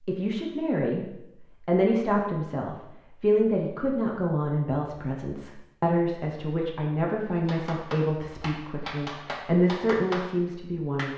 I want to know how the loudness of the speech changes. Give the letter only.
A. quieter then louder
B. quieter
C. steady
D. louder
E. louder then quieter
C.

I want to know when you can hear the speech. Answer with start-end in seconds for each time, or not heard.
0.0-11.1.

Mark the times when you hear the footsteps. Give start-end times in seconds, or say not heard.
not heard.